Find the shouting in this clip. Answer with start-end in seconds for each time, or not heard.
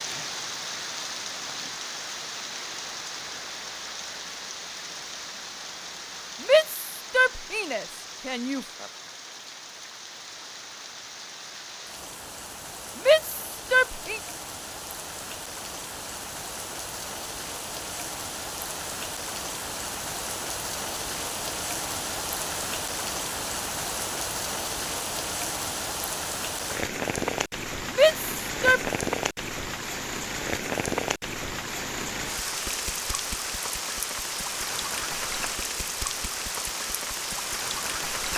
6.4-8.7, 12.9-14.2, 27.9-28.9.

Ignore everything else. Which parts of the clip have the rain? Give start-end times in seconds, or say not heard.
0.0-38.3.